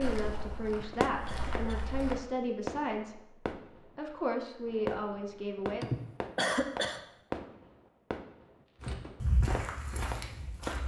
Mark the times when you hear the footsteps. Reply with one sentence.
You can hear the footsteps from 0.0 to 2.2 s and from 8.8 to 10.8 s.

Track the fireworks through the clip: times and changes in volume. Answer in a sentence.
You can hear the fireworks from 0.2 to 10.8 s, getting quieter.